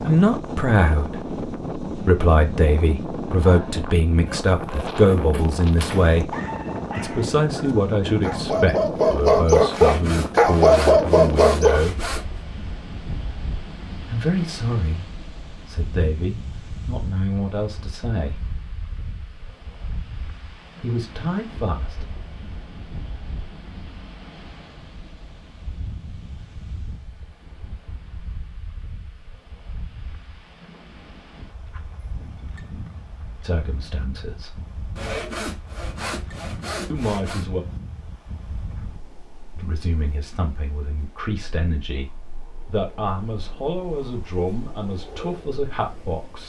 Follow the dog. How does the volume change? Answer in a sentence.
The loudness of the dog goes up.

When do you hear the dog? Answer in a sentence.
The dog can be heard from 3.4 to 11.8 s.